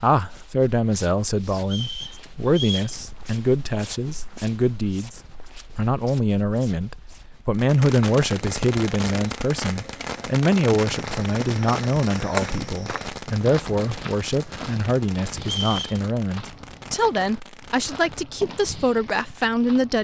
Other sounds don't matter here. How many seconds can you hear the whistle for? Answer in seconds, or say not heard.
2 s.